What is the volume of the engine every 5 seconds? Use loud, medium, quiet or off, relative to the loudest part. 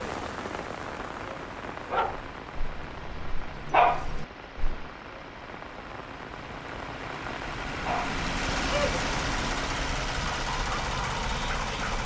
quiet, loud, loud.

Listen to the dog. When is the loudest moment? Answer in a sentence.
The volume of the dog peaks at 4 seconds.